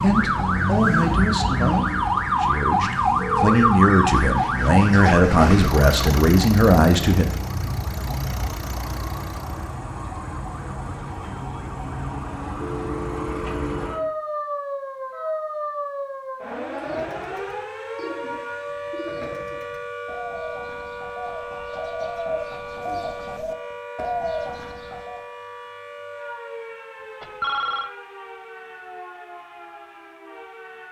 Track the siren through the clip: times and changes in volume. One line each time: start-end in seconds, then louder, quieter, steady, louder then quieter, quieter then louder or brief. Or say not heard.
0.0-30.8 quieter.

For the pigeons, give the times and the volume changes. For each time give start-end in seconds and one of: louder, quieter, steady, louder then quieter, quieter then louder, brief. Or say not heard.
16.6-25.2 louder.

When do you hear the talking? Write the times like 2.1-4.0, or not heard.
0.0-7.2.